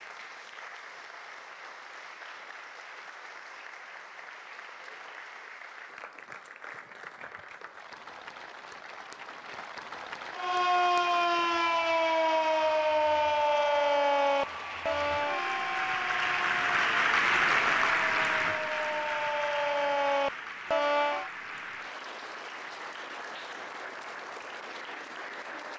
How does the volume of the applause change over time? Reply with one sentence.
The loudness of the applause goes up, then down.